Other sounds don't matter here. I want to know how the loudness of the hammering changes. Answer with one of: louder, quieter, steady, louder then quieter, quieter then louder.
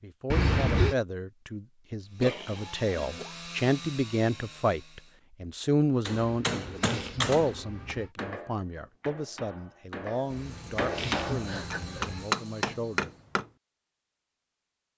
quieter then louder.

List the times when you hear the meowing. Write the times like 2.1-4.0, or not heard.
0.3-0.9, 6.2-8.1, 10.3-12.3.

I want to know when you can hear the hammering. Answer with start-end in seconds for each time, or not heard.
6.0-13.4.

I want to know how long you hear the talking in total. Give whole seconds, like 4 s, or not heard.
13 s.